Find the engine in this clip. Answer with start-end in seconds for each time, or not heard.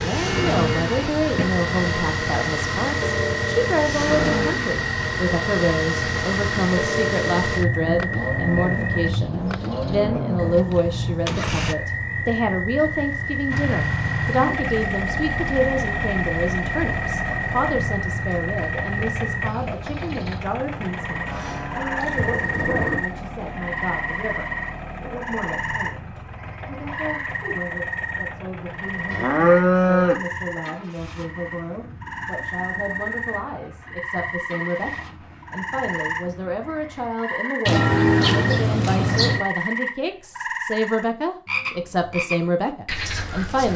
0.0-11.8, 13.5-37.1.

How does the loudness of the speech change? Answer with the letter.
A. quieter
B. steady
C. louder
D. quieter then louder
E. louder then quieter
D.